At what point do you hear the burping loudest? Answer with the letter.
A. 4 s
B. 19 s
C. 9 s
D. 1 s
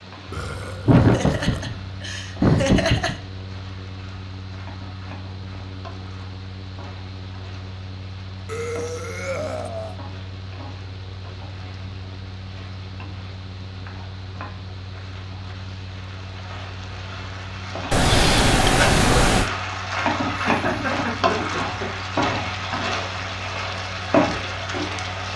B.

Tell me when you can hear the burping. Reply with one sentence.
The burping can be heard from 0.3 to 1.7 s, from 8.4 to 9.9 s and from 17.9 to 19.5 s.